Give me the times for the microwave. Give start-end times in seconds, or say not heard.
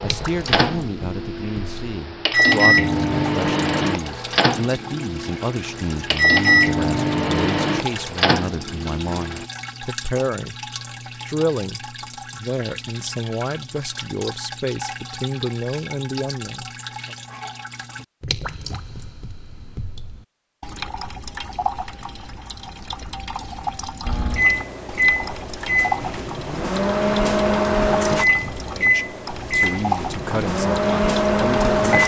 0.0-9.4, 24.1-32.0.